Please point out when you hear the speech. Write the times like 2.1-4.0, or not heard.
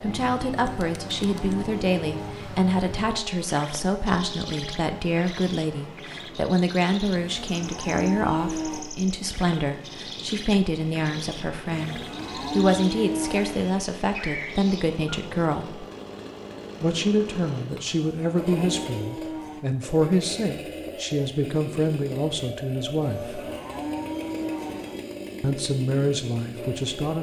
0.0-15.8, 16.8-23.4, 25.4-27.1.